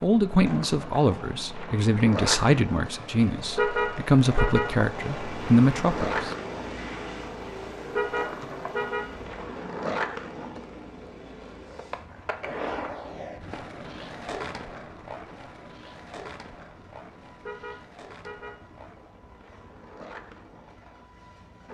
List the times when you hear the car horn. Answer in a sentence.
The car horn can be heard from 3.5 to 4.8 s, from 8.0 to 9.1 s and from 17.4 to 18.6 s.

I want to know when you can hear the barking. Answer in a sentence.
You can't hear the barking here.